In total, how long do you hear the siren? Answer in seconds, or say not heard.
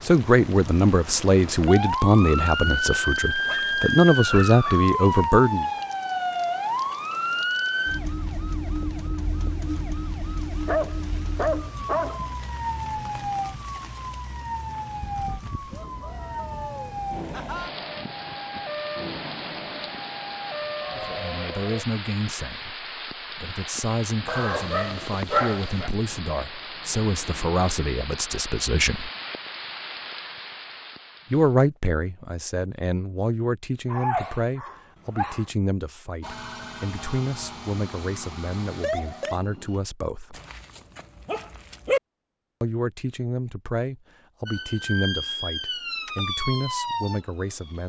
29 s.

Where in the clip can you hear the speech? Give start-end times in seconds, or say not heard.
0.0-5.7, 20.9-29.1, 31.3-40.4, 42.6-47.8.